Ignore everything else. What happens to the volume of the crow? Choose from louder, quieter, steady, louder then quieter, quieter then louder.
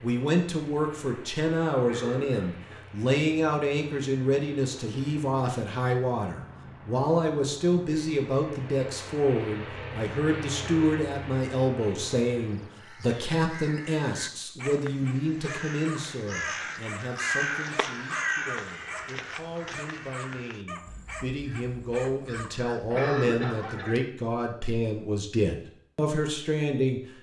louder then quieter.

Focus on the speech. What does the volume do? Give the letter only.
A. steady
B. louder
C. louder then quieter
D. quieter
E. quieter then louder
E.